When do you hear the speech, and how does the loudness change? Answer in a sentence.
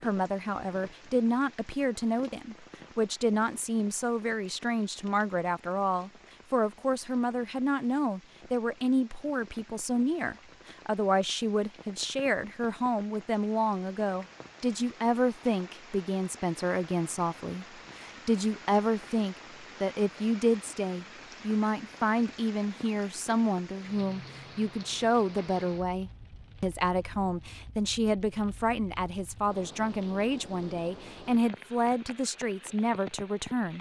The speech can be heard from 0.0 to 33.7 s, at a steady volume.